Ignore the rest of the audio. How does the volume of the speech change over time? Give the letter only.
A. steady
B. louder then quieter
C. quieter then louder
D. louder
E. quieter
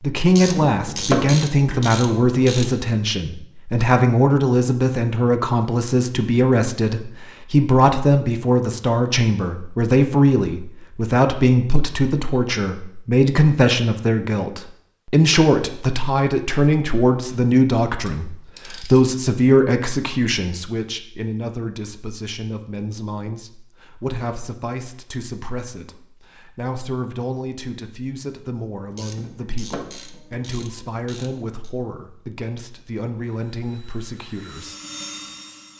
E.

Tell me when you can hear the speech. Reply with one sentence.
The speech can be heard from 0.0 to 34.8 s.